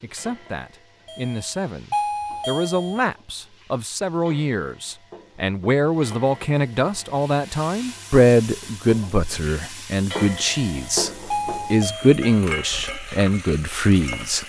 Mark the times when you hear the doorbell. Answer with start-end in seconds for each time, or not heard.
1.1-3.0, 10.7-12.3.